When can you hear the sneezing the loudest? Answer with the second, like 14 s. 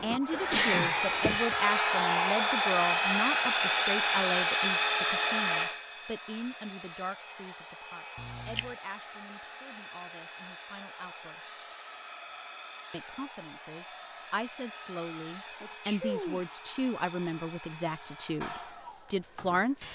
1 s.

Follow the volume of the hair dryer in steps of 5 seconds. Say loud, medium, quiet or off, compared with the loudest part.
loud, medium, quiet, quiet.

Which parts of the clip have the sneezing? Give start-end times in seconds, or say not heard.
0.3-1.2, 8.2-8.7, 15.6-16.4.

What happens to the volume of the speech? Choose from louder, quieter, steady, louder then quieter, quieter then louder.
quieter then louder.